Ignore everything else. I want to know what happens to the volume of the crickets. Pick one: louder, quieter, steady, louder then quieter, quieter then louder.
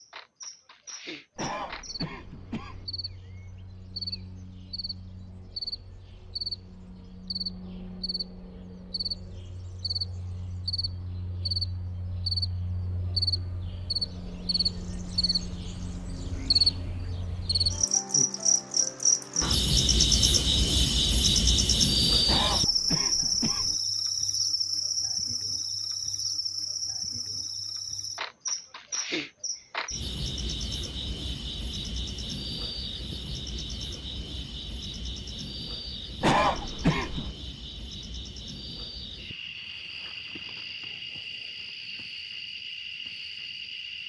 louder then quieter.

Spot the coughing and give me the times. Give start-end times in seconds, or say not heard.
1.4-2.9, 22.2-23.8, 36.2-37.4.